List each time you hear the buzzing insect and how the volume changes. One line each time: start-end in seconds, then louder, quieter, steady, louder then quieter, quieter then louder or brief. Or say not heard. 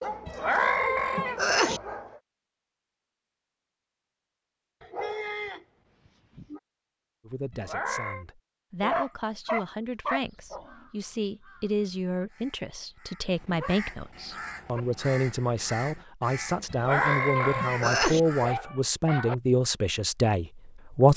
not heard.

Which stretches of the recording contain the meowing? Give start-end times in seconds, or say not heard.
0.2-1.8, 7.5-8.2, 16.7-18.2.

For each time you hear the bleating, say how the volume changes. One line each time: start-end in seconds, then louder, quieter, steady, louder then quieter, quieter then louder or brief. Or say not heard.
not heard.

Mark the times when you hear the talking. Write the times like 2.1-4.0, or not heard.
7.2-21.1.